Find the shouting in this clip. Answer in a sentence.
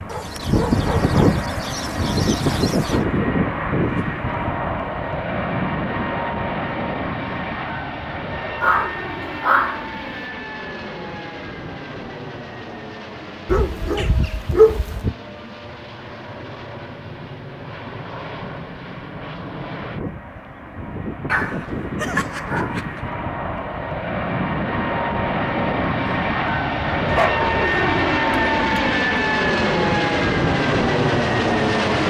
You can't hear the shouting here.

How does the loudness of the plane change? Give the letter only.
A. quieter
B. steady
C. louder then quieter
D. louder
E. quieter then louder
E.